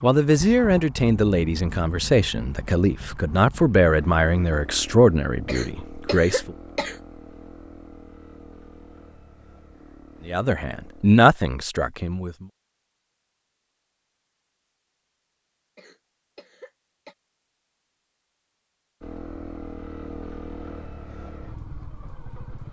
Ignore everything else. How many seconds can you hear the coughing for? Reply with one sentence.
The coughing can be heard for 3 seconds in total.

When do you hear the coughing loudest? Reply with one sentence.
The loudest moment of the coughing is at 6 seconds.